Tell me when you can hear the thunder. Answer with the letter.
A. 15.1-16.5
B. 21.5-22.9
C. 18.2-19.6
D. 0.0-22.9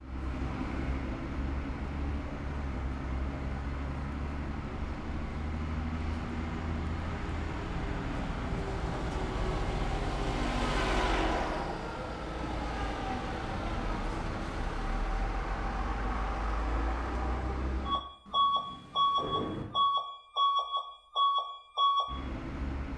C.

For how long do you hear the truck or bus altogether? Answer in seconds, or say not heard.
23 s.